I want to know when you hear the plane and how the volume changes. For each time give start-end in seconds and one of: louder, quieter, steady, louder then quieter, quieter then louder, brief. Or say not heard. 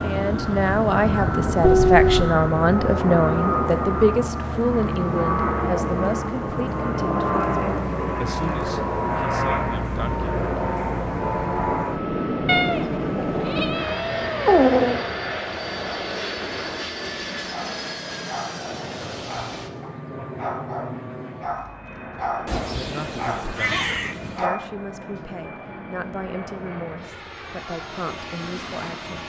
0.0-29.2 quieter.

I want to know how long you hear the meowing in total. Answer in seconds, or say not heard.
5 s.